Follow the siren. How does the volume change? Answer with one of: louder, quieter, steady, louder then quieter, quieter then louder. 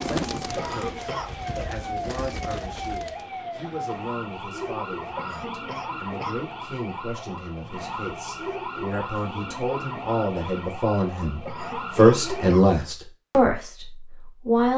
steady.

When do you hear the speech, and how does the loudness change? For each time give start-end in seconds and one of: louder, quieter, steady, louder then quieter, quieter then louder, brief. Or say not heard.
0.0-14.7 louder.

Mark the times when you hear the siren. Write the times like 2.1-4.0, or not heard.
0.2-12.5.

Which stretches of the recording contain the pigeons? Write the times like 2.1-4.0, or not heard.
0.0-3.2.